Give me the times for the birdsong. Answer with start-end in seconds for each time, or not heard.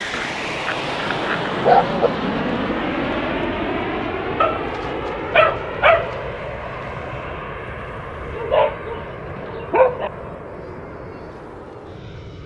not heard.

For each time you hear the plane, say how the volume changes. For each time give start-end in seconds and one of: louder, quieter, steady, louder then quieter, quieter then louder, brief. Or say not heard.
0.0-12.4 quieter.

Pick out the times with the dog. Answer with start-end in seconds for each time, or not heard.
0.1-2.1, 4.4-6.2, 8.3-10.1.